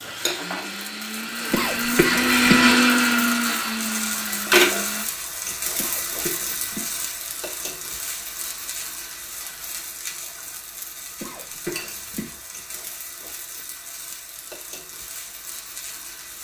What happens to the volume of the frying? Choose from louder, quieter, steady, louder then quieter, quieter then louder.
louder then quieter.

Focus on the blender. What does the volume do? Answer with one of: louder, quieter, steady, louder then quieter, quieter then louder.
louder then quieter.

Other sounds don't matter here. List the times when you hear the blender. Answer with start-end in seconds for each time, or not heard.
0.0-5.0.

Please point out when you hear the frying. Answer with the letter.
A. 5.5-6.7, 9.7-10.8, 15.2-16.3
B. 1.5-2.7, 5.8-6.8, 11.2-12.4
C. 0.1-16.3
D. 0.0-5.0
C.